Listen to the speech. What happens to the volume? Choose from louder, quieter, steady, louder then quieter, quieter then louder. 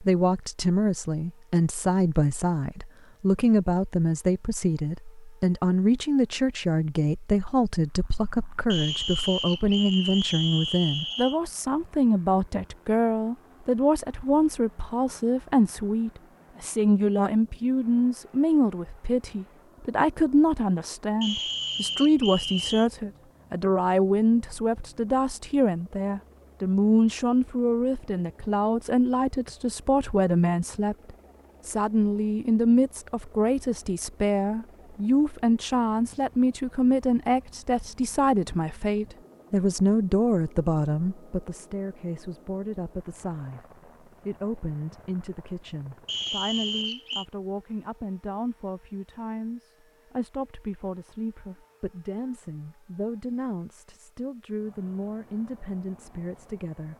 quieter.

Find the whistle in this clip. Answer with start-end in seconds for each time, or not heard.
8.7-11.4, 21.2-22.9, 46.0-47.2.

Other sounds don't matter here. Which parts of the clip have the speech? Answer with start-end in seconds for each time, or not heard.
0.0-56.9.